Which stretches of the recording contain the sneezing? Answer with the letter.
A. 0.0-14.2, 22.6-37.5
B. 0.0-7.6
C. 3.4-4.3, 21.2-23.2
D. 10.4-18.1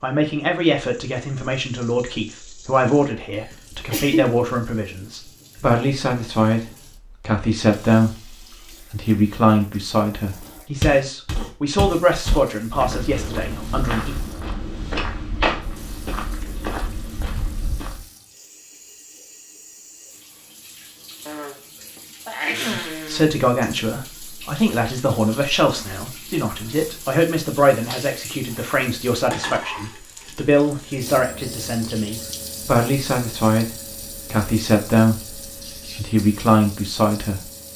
C.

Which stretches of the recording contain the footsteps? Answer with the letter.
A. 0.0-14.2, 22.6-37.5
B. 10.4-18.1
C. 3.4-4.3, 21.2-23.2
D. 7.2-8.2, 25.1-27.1
B.